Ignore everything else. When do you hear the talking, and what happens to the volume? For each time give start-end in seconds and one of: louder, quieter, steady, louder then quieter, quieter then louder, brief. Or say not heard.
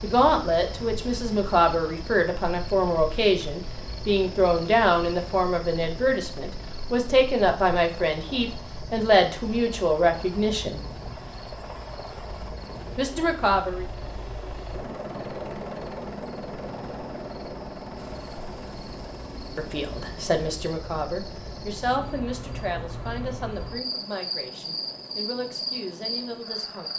0.0-10.8 steady
12.9-13.8 brief
19.6-26.9 quieter.